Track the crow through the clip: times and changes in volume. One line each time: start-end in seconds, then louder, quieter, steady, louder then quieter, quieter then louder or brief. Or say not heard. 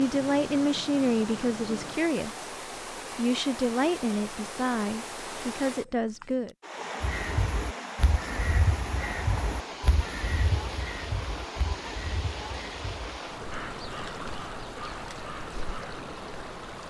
7.0-16.1 quieter.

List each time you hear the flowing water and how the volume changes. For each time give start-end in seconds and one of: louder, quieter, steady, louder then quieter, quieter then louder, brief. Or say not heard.
0.0-16.8 steady.